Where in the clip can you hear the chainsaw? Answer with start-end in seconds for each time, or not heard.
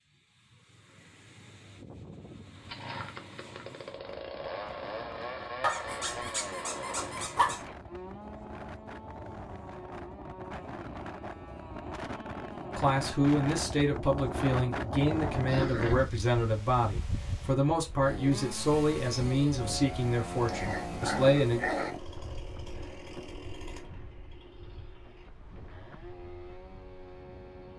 2.5-13.3, 18.0-27.7.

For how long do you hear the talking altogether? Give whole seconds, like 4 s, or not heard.
9 s.